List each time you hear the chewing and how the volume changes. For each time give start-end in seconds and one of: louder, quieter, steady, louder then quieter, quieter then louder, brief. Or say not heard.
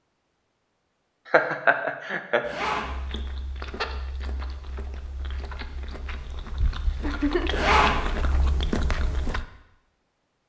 2.9-9.4 quieter then louder.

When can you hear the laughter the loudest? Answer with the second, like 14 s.
2 s.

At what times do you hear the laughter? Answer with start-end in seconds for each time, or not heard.
1.3-2.4, 7.0-7.7.